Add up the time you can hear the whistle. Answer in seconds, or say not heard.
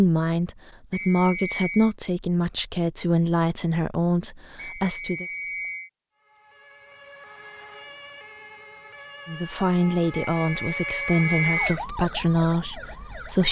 4 s.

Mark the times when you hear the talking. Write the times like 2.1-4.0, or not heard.
0.0-5.2, 9.2-13.4.